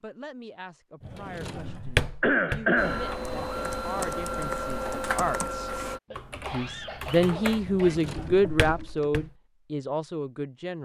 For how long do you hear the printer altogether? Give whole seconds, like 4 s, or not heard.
3 s.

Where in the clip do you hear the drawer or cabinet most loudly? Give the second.
2 s.